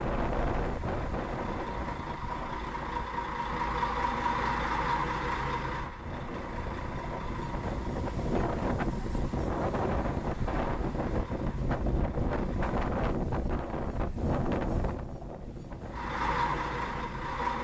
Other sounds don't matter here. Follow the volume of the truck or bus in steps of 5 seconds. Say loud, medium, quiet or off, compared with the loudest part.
loud, medium, quiet, loud.